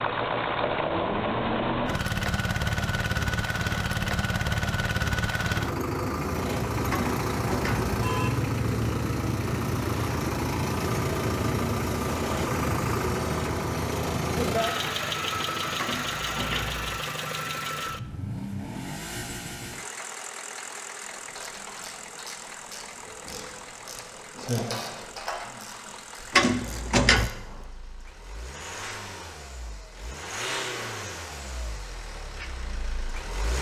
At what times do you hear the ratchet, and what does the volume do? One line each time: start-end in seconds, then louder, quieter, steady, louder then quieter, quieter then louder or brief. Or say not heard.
21.0-27.6 louder then quieter.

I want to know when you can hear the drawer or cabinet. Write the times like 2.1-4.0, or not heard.
6.9-7.9, 15.8-16.9, 26.3-27.3.